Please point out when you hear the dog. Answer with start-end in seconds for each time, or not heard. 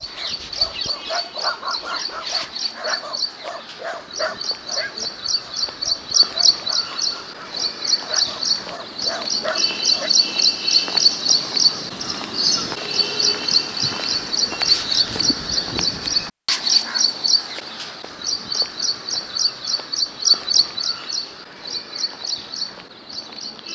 0.0-10.1.